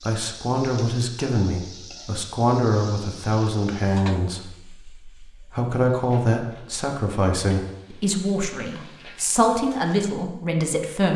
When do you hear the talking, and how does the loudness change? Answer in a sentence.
The talking can be heard from 0.0 to 11.1 s, at a steady volume.